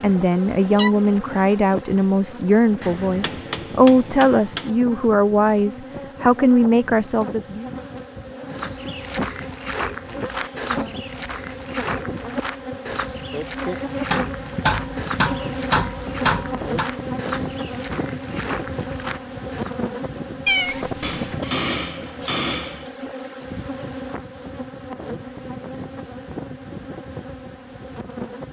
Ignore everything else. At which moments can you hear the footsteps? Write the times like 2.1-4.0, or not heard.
8.5-19.8.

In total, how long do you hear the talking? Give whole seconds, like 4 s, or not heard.
8 s.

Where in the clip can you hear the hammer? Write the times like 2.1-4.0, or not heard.
2.8-4.7, 14.1-16.9, 21.0-22.9.